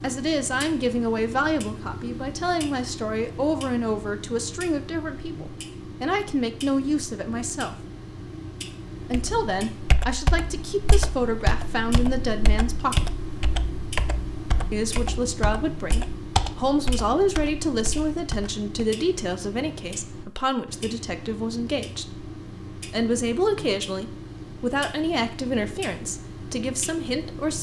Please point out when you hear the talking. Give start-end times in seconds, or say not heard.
0.0-7.8, 9.1-13.1, 14.7-27.5.